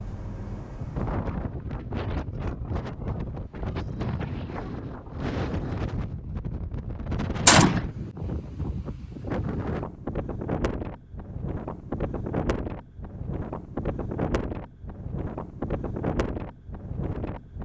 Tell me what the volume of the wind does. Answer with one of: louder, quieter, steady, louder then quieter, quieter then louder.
steady.